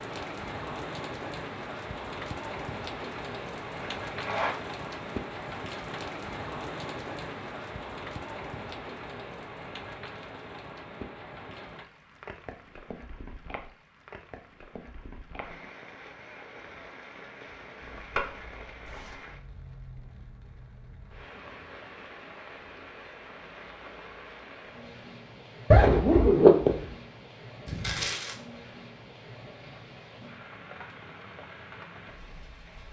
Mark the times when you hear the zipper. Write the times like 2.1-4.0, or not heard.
4.0-4.5, 17.8-19.1, 25.7-26.8.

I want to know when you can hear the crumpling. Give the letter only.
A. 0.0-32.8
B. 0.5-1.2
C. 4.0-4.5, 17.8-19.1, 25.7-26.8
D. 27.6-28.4
D.